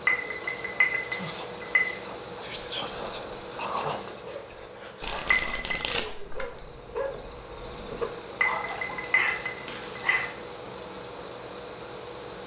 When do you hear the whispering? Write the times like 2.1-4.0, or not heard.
0.1-6.2.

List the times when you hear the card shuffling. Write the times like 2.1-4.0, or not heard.
5.0-6.7.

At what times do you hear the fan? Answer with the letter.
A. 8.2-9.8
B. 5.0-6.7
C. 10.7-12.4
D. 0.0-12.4
D.